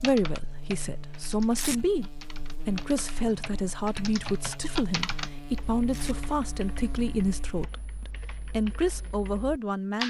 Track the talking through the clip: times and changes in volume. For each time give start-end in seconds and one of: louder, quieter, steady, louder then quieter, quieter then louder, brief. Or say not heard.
0.0-10.0 steady.